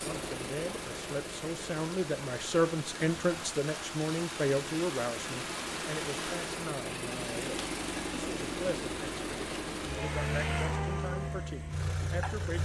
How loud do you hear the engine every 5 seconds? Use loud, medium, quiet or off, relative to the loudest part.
medium, loud, loud.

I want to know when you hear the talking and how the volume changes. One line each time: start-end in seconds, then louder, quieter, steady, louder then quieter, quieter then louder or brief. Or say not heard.
0.0-12.6 quieter.